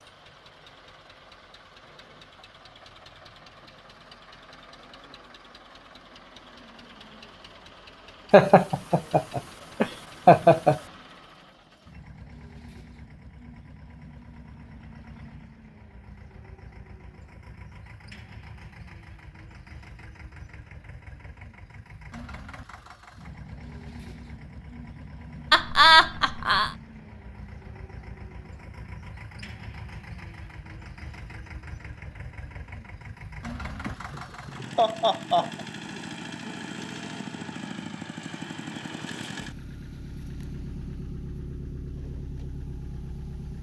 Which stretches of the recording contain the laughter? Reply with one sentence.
The laughter can be heard from 8.3 to 10.8 s, from 25.5 to 26.7 s and from 33.9 to 35.6 s.